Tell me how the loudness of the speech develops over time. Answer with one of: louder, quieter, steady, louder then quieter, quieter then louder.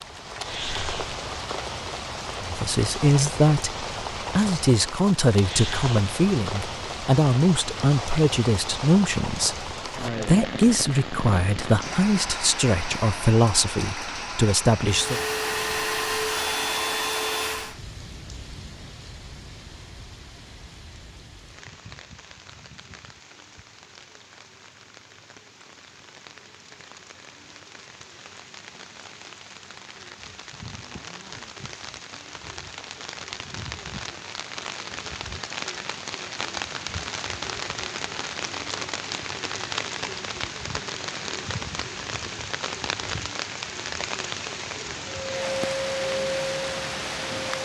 steady.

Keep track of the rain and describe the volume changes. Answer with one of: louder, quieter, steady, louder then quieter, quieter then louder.
quieter then louder.